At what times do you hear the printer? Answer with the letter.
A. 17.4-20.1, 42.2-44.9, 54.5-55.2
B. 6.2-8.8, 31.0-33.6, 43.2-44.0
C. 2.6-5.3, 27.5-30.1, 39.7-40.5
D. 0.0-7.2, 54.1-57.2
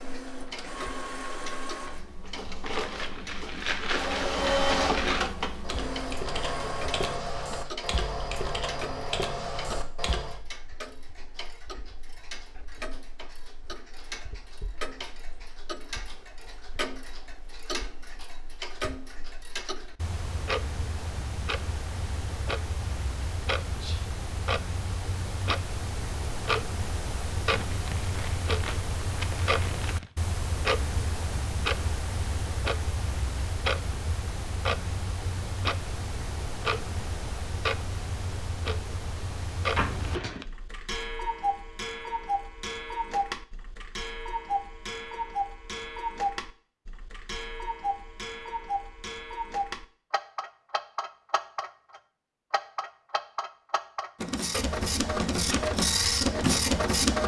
D.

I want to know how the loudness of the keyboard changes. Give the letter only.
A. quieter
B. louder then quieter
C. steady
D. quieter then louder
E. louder
C.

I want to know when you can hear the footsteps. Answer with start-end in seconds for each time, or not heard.
not heard.